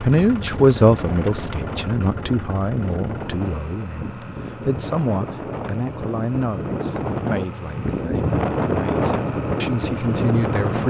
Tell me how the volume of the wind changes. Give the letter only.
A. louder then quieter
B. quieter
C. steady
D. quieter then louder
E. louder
E.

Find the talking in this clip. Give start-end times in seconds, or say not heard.
0.0-10.8.